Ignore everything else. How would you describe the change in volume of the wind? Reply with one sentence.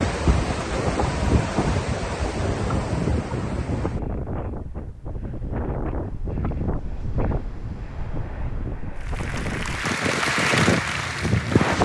The loudness of the wind goes down, then up.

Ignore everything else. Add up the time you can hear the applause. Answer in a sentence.
You can hear the applause for 3 seconds altogether.